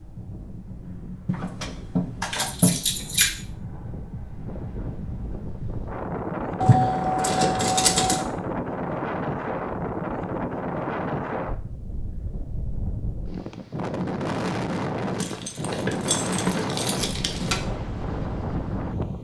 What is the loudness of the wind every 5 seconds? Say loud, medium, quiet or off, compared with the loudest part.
medium, loud, loud, loud.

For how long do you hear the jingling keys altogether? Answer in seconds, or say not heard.
6 s.